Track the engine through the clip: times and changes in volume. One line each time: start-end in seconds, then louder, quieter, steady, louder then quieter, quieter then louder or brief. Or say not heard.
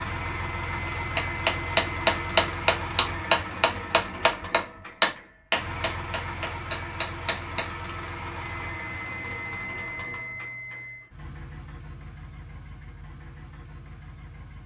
0.0-14.6 quieter.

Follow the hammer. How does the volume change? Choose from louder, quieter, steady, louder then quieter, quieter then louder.
quieter.